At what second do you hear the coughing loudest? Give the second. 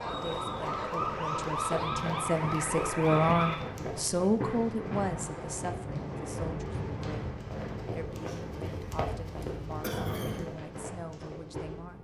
10 s.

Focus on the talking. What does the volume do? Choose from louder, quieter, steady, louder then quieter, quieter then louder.
louder then quieter.